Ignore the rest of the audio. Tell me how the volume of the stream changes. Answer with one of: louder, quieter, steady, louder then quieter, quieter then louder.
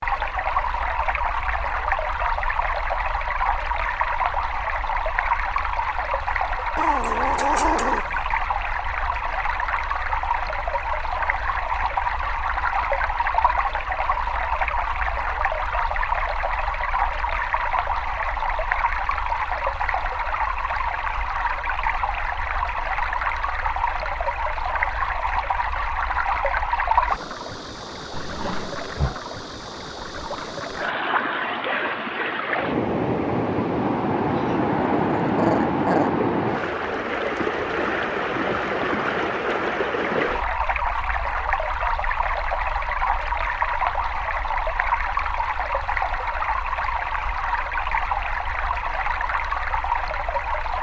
steady.